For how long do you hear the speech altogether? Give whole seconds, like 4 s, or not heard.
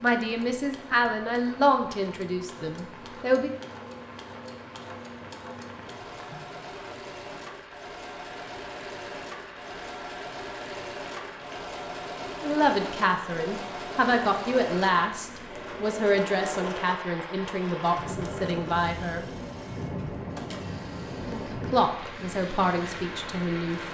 13 s.